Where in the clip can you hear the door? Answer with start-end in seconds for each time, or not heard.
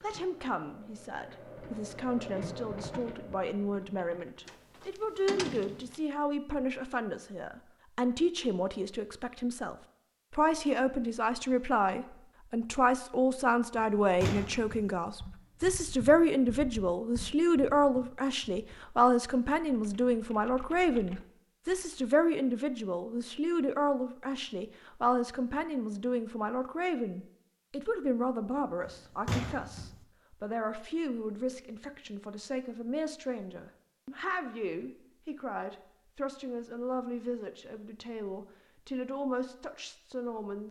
4.5-6.0, 13.8-14.9, 28.9-30.0.